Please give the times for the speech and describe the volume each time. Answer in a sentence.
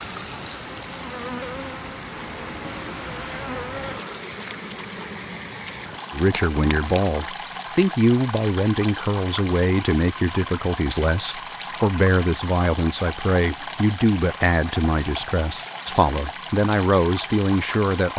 You can hear the speech from 6.1 to 18.1 s, at a steady volume.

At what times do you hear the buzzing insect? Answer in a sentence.
You can hear the buzzing insect from 0.0 to 7.0 s.